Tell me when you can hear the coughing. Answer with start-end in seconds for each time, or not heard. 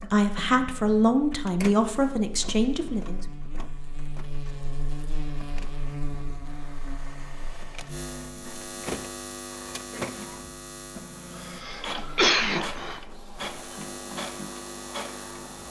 11.4-13.0.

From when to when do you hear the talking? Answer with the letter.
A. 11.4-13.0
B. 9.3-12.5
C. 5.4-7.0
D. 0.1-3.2
D.